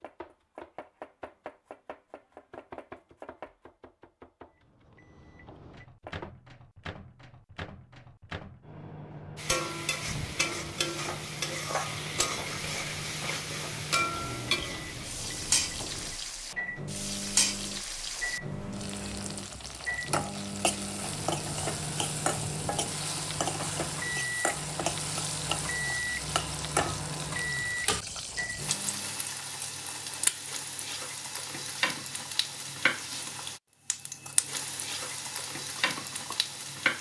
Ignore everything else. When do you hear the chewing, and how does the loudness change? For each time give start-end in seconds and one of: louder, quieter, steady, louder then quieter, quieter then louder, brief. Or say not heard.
not heard.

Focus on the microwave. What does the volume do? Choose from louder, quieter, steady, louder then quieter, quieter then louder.
louder.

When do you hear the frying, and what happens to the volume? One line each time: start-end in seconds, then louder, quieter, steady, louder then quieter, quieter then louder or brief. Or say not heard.
9.3-36.9 steady.